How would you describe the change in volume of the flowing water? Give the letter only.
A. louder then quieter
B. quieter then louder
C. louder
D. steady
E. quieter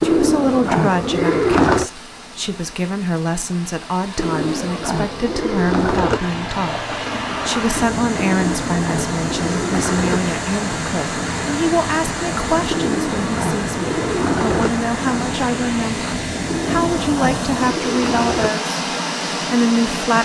C.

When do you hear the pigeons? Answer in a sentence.
You can hear the pigeons from 0.0 to 1.9 s, from 4.2 to 6.2 s, from 8.2 to 10.2 s, from 12.7 to 14.7 s and from 16.5 to 18.5 s.